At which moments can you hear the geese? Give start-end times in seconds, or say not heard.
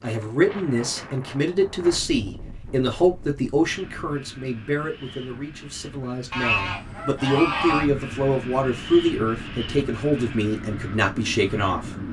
6.3-7.9.